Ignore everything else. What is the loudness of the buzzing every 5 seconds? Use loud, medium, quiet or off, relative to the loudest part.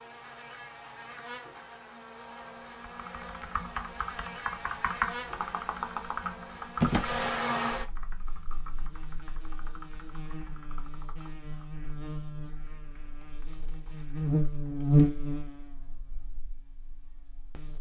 quiet, medium, loud, loud.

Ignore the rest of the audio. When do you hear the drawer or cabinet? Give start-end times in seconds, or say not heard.
6.8-7.5.